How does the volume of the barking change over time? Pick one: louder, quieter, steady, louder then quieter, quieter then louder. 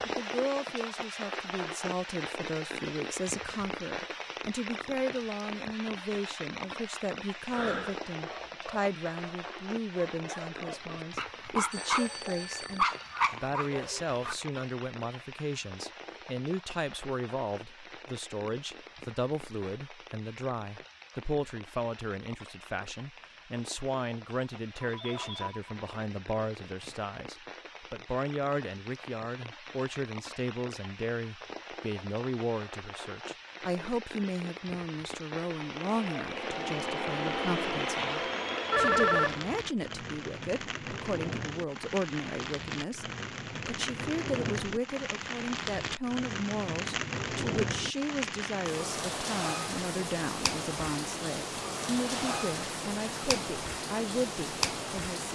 louder.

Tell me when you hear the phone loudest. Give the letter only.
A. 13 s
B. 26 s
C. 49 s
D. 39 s
D.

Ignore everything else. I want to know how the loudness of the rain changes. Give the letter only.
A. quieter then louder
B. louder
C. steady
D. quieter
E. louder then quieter
A.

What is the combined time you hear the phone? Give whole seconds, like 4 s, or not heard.
3 s.